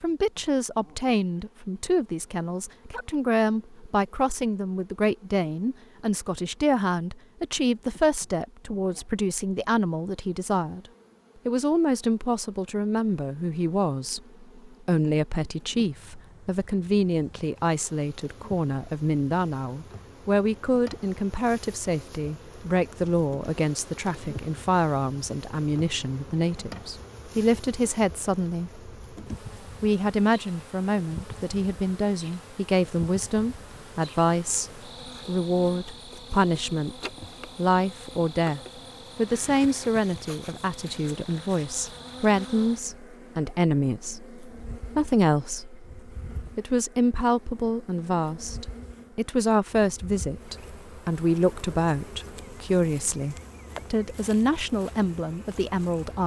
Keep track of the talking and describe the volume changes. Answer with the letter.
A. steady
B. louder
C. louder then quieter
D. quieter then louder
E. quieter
A.